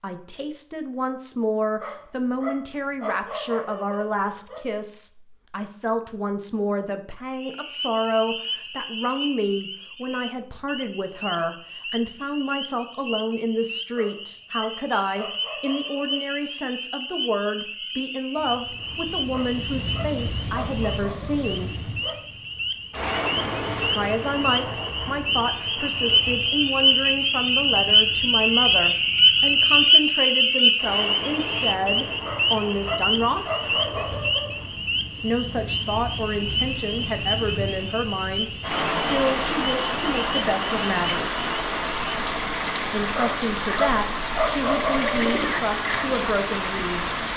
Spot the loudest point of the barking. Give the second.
45 s.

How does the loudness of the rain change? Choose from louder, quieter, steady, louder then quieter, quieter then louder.
quieter then louder.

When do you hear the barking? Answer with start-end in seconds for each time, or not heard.
1.8-4.6, 13.9-16.3, 19.3-22.2, 32.2-34.6, 43.1-45.5.